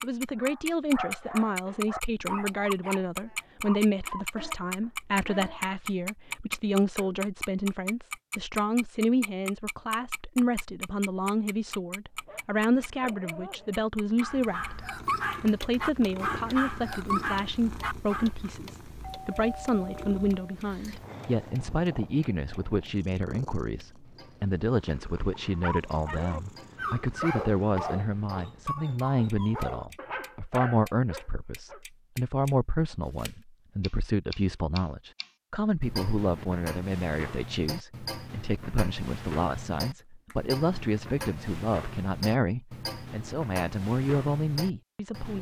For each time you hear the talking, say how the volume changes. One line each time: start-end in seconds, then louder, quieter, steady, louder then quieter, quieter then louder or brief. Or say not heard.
0.0-45.3 steady.